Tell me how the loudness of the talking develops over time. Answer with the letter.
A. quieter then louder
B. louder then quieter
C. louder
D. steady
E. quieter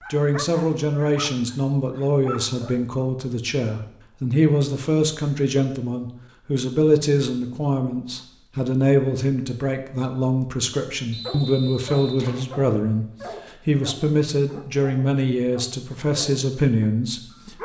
D.